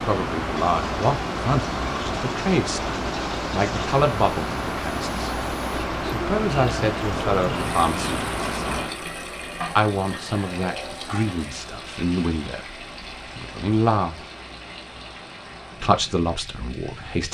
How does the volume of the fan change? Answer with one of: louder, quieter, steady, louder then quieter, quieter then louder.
quieter.